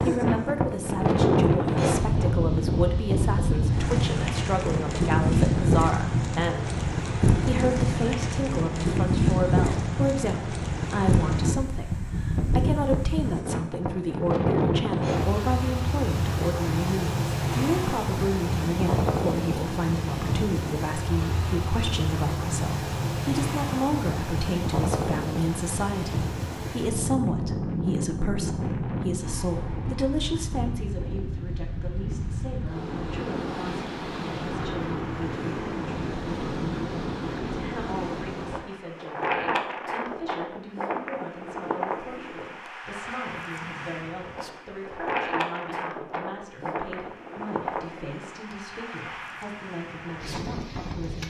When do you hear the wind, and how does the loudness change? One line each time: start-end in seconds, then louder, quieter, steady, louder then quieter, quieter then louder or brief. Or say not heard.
0.0-51.2 quieter.